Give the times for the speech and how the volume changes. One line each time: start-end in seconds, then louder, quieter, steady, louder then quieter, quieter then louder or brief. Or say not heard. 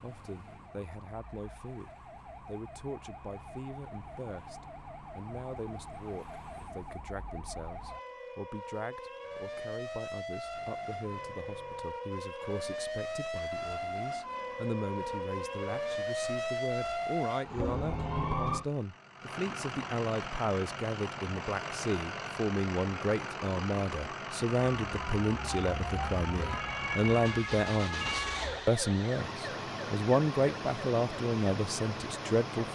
0.0-32.7 louder.